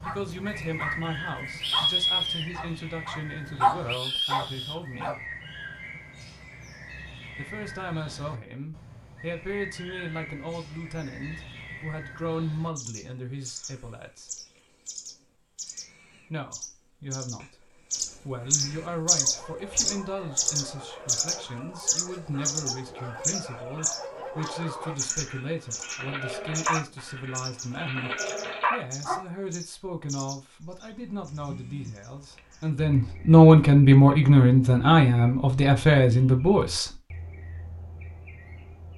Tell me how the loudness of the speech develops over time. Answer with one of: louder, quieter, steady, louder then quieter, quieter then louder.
louder.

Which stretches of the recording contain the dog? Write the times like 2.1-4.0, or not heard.
0.0-5.2, 19.1-29.2.